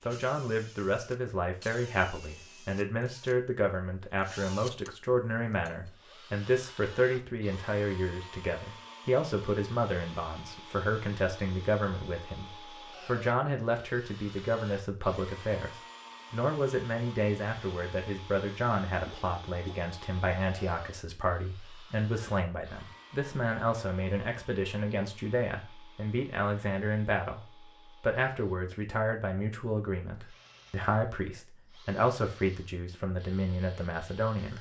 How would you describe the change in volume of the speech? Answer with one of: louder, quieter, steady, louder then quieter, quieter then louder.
steady.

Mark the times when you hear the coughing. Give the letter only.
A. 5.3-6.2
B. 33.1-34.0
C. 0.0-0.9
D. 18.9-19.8
D.